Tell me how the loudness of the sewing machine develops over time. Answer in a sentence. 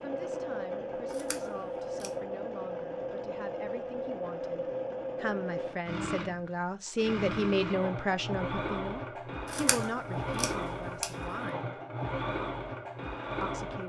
The loudness of the sewing machine stays about the same.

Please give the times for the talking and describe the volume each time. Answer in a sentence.
You can hear the talking from 0.0 to 11.7 s, getting louder then quieter; and briefly from 13.4 to 13.8 s.